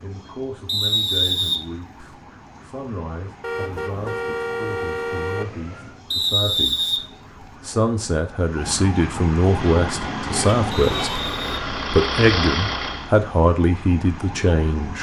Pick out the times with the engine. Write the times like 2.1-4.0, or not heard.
9.4-13.2.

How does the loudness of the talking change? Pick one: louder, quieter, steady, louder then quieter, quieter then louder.
louder.